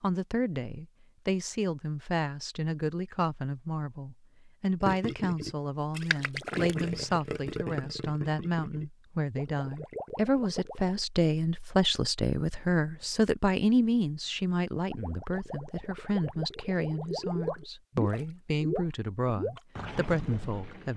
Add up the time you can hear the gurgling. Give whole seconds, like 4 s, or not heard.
12 s.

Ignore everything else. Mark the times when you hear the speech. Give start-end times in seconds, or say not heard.
0.0-20.9.